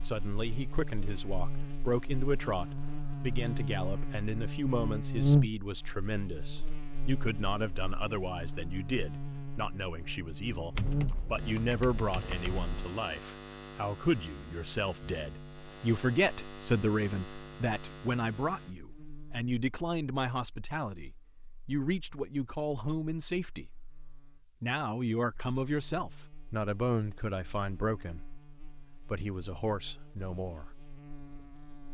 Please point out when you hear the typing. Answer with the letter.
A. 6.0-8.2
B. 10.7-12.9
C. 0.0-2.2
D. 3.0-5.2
B.